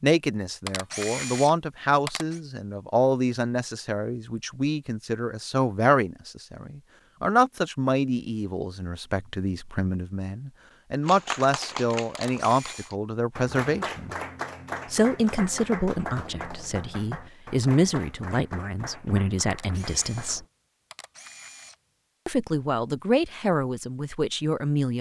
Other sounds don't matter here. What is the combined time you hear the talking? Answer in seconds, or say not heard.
22 s.